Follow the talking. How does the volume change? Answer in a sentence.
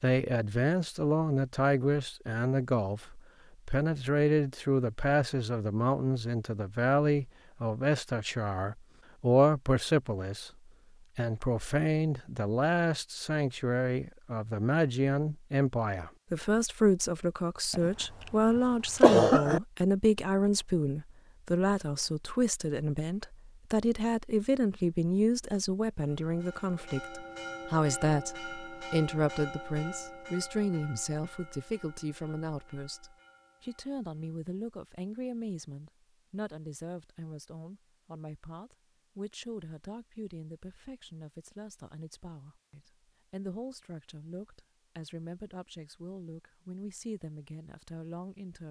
The volume of the talking goes down.